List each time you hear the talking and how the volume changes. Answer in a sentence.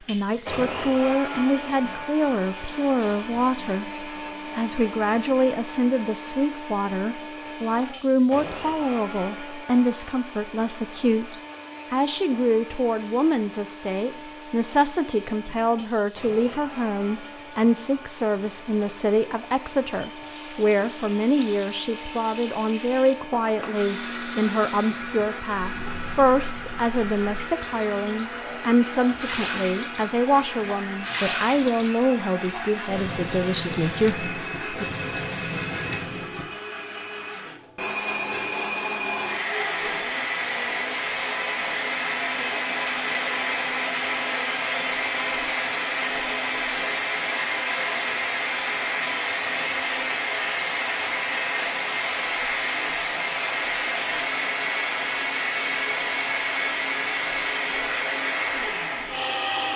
You can hear the talking from 0.1 to 34.9 s, at a steady volume.